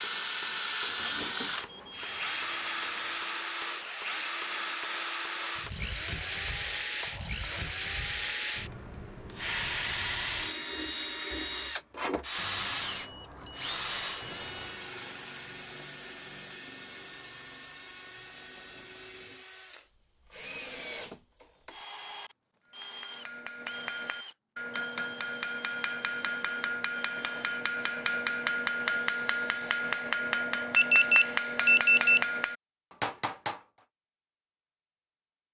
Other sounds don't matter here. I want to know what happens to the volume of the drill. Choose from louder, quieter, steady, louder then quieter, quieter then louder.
quieter.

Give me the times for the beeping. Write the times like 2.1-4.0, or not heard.
1.1-3.3, 12.3-14.8, 30.8-32.2.